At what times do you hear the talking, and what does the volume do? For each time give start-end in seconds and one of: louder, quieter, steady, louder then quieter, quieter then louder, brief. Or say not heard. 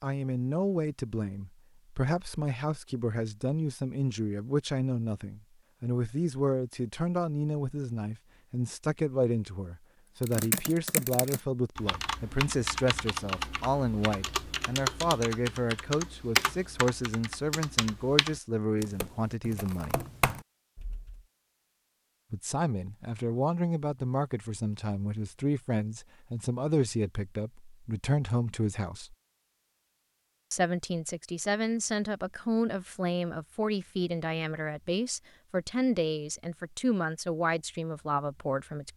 0.0-19.9 steady
22.3-29.1 steady
30.5-38.9 steady.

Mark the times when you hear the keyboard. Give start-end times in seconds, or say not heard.
10.2-21.2.